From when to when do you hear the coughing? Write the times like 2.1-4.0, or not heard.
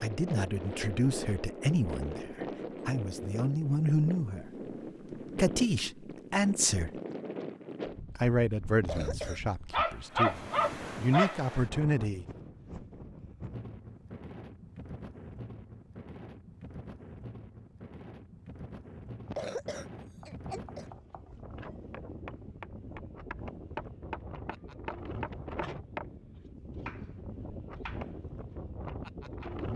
8.8-9.4, 19.2-20.9.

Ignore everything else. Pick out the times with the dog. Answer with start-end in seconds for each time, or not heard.
9.7-11.4.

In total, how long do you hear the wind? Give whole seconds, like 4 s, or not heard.
30 s.